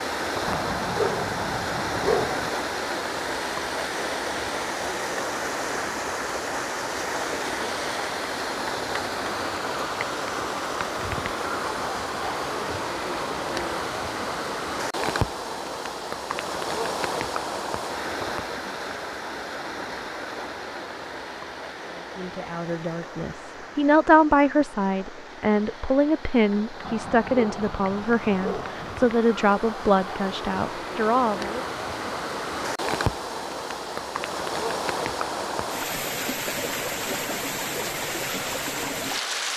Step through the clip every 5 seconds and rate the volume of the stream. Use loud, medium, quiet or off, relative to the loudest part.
loud, loud, loud, loud, medium, medium, loud, loud.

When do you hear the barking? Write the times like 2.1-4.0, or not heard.
0.5-2.5, 26.8-29.1.